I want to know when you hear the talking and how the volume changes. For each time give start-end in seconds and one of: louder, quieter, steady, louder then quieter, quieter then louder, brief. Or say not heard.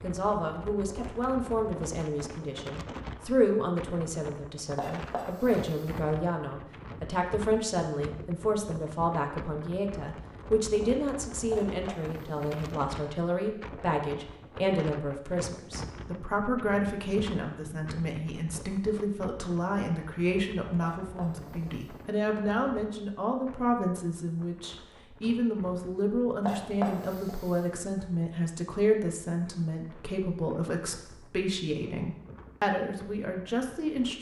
0.0-34.1 steady.